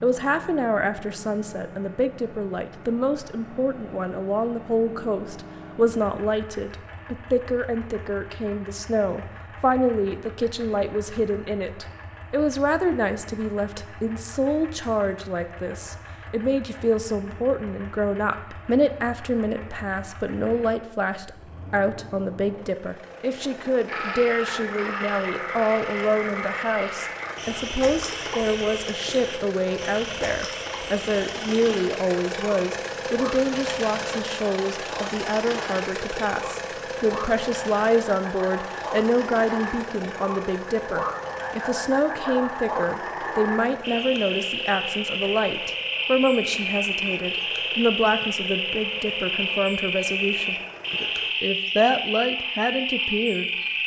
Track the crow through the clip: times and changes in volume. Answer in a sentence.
You can't hear the crow here.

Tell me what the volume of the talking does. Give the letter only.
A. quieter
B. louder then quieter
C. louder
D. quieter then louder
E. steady
E.